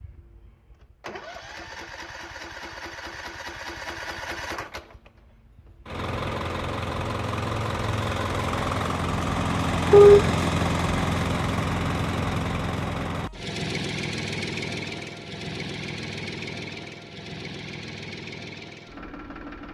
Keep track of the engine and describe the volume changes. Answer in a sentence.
The loudness of the engine goes up, then down.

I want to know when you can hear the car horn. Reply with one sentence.
You can hear the car horn from 9.9 to 10.3 s.